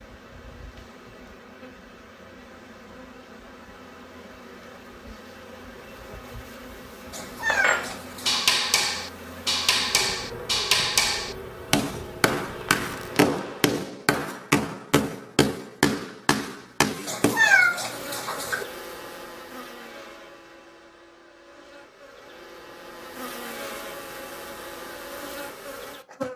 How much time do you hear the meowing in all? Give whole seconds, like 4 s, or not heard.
3 s.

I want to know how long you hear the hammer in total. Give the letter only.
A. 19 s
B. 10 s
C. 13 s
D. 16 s
B.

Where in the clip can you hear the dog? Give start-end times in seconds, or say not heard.
not heard.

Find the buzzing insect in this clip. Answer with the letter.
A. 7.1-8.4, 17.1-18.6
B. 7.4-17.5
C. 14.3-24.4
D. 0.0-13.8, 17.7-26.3
D.